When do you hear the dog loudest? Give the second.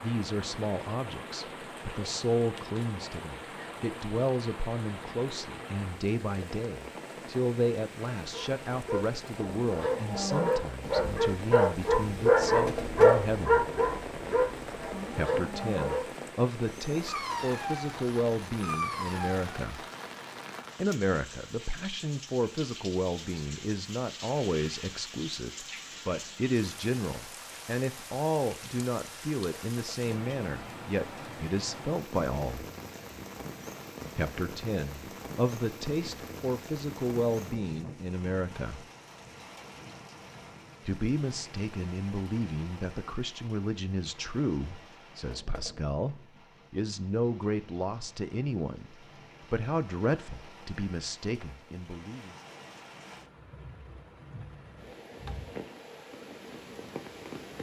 13 s.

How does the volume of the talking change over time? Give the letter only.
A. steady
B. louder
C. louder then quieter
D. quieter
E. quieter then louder
A.